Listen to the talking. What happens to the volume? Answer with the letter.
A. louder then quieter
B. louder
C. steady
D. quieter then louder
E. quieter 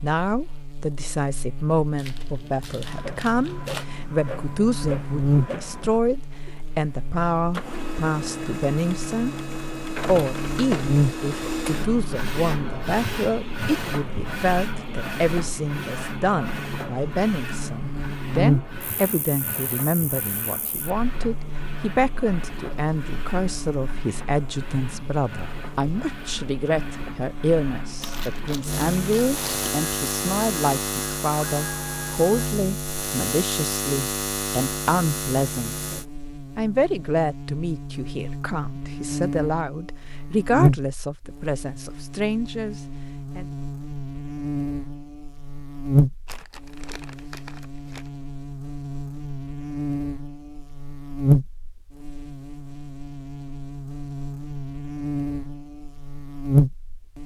C.